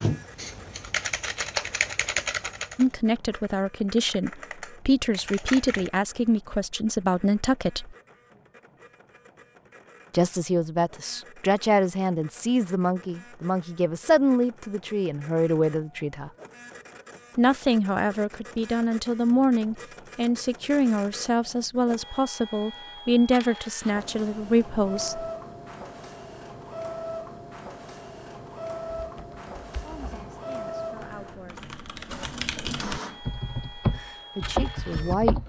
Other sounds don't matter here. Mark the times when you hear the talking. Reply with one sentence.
You can hear the talking from 2.8 to 8.0 s, from 10.1 to 16.3 s, from 17.4 to 25.2 s, from 29.7 to 31.7 s and from 33.9 to 35.4 s.